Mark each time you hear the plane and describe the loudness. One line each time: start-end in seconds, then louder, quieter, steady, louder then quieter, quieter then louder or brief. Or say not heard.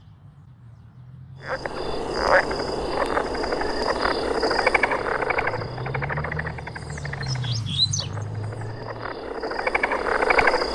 not heard.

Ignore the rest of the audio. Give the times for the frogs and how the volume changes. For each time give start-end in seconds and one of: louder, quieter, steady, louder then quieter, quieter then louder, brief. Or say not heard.
1.4-10.6 quieter then louder.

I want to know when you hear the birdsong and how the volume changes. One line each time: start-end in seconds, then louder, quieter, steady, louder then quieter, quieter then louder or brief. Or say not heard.
0.0-9.2 louder.